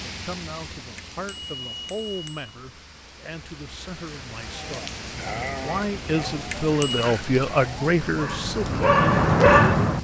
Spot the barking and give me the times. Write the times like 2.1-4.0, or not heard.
4.4-9.9.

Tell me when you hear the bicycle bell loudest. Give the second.
7 s.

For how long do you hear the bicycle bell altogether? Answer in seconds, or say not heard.
2 s.